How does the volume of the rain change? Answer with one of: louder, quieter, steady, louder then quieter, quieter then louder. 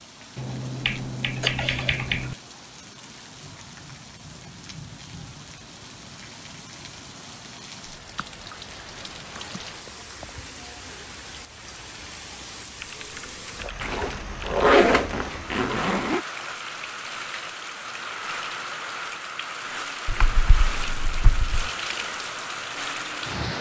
louder.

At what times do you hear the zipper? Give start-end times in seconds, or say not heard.
13.8-16.2.